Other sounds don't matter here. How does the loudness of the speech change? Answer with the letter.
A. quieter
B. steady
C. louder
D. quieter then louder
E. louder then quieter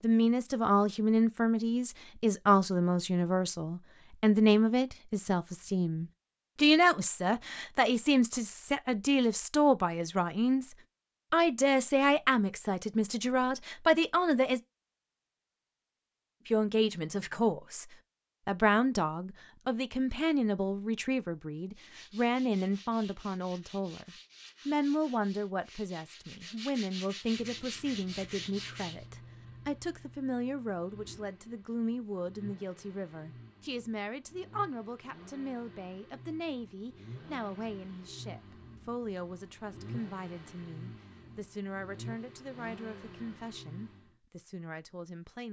A.